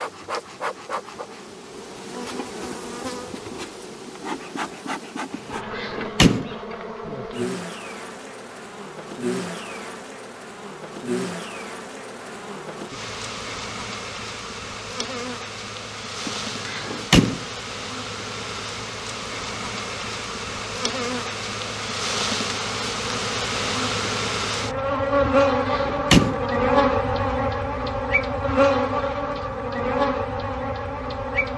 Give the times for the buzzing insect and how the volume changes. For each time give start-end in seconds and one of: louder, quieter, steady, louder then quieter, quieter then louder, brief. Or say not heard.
0.0-31.5 louder.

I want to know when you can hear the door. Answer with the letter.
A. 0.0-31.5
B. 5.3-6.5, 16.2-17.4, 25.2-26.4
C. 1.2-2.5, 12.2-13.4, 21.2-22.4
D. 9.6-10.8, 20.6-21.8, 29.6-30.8
B.